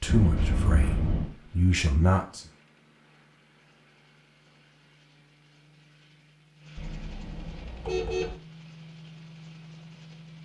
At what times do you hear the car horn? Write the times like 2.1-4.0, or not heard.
0.1-1.4, 6.8-8.3.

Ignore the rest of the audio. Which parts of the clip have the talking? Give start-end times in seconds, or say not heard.
0.0-2.5.